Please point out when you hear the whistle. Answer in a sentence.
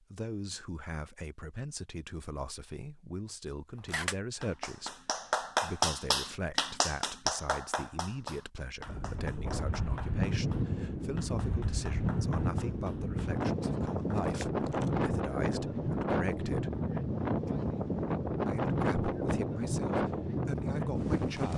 You can't hear the whistle here.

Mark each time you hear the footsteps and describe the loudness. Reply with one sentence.
The footsteps can't be heard in this clip.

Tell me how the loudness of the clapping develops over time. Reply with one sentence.
The volume of the clapping goes down.